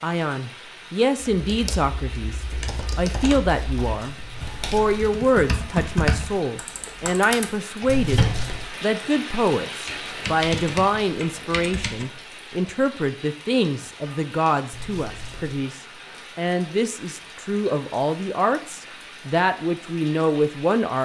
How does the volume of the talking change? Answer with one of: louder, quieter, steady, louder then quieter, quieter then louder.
steady.